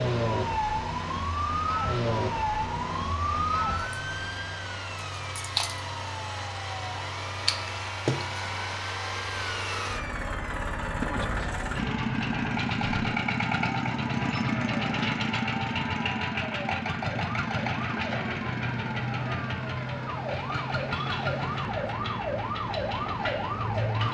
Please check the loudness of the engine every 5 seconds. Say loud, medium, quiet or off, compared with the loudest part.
medium, medium, loud, loud, medium.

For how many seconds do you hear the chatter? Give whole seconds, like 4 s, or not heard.
not heard.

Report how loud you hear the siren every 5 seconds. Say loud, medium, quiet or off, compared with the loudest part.
loud, medium, medium, medium, loud.